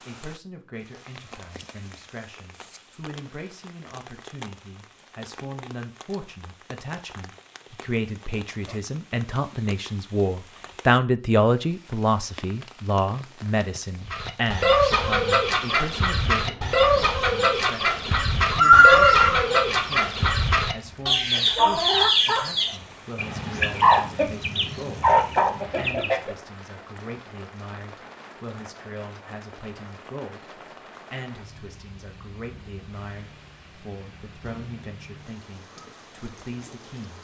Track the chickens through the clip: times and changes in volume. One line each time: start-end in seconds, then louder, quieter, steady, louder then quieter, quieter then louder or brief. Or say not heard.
14.1-26.4 steady.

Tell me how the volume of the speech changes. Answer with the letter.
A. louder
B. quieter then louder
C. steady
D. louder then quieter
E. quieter
D.